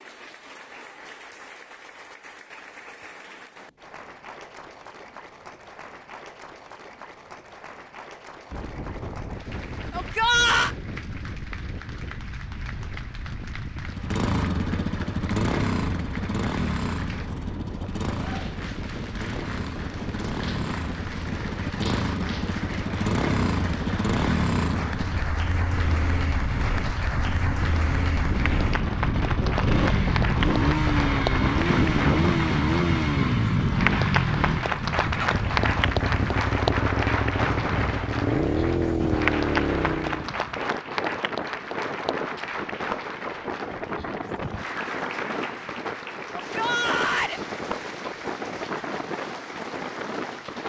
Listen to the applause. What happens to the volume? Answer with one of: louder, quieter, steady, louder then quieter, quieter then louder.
louder then quieter.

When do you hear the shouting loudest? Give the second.
10 s.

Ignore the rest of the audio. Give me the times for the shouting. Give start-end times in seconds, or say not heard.
9.9-10.8, 46.4-47.4.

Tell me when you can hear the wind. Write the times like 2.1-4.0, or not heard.
8.5-50.6.